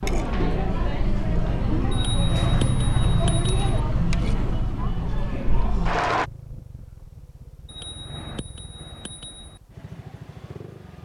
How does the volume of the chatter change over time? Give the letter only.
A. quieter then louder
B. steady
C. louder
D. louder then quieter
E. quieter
B.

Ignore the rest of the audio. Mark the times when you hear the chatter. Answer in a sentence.
You can hear the chatter from 0.0 to 6.2 s.